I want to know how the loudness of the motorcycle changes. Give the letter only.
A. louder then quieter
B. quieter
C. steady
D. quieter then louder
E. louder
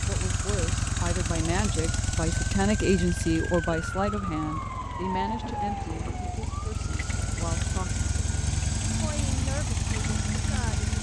D.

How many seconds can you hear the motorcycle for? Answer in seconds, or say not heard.
11 s.